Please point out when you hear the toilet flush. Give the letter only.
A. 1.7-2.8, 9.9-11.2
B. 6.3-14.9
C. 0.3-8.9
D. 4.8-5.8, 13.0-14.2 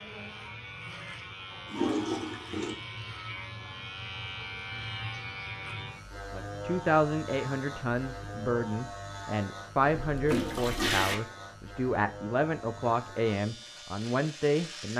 A.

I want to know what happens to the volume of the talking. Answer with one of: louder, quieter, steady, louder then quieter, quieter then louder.
steady.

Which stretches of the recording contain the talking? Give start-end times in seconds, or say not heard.
6.3-14.9.